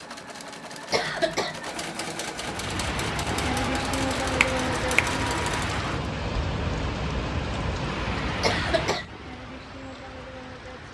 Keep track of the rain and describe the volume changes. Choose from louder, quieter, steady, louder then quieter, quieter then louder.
quieter.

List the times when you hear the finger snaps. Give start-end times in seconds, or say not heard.
4.4-5.2.